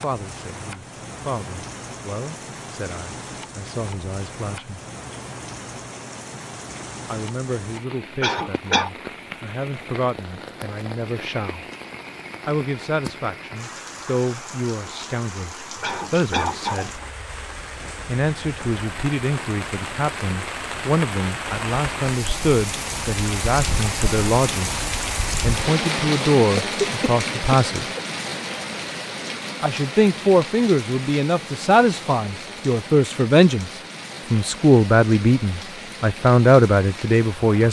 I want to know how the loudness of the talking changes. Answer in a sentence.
The loudness of the talking goes up.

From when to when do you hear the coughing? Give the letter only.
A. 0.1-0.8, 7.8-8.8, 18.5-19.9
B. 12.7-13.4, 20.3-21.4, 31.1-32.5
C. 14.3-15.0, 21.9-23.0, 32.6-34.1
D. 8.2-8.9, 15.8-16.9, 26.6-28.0
D.